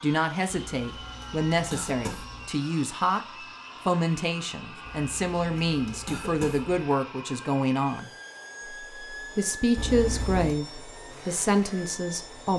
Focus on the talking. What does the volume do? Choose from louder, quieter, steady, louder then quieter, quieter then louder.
steady.